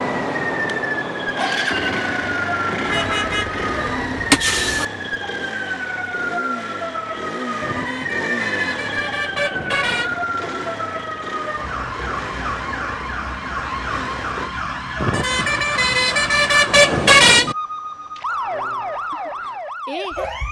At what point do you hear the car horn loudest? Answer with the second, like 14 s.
17 s.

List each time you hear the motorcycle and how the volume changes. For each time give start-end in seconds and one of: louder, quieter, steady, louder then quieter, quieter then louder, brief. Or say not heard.
0.0-14.6 quieter.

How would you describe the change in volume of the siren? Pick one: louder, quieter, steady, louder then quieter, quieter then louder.
steady.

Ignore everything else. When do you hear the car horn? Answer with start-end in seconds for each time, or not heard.
2.9-4.8, 7.6-10.2, 14.9-17.6.